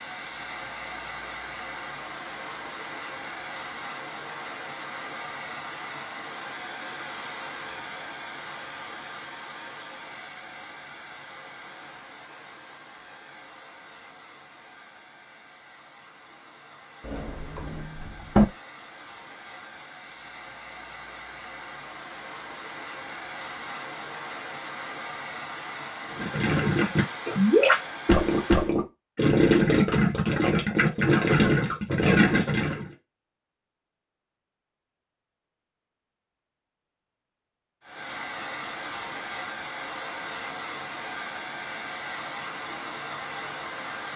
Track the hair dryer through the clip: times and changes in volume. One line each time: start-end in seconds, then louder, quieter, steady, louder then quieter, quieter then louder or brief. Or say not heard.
0.0-28.8 quieter then louder
37.8-44.1 steady.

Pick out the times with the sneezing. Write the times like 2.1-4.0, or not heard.
not heard.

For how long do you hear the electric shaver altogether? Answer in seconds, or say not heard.
not heard.